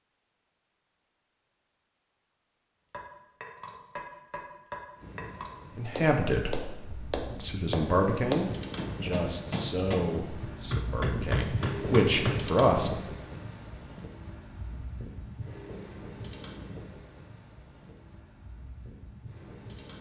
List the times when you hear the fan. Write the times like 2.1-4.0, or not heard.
5.0-19.9.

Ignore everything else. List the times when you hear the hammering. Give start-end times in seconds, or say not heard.
2.9-12.4.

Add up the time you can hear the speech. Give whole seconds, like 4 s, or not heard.
7 s.